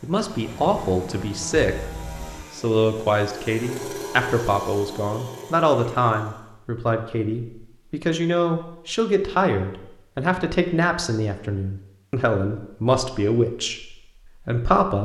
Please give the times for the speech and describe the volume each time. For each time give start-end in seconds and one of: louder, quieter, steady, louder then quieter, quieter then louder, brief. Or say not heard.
0.0-1.9 brief
2.5-14.9 steady.